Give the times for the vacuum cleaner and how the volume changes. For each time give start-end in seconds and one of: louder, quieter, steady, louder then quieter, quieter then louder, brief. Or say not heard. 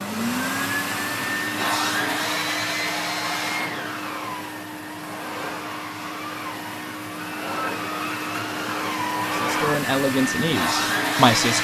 0.0-11.5 quieter then louder.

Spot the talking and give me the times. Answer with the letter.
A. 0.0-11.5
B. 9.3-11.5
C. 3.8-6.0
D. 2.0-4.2
B.